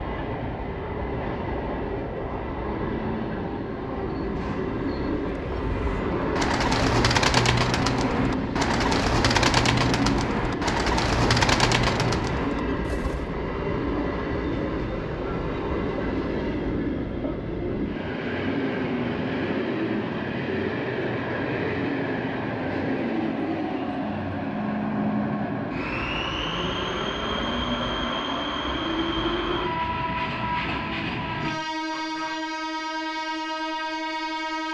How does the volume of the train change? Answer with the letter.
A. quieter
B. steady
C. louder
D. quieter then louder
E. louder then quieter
B.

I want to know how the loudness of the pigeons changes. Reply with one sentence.
The volume of the pigeons stays about the same.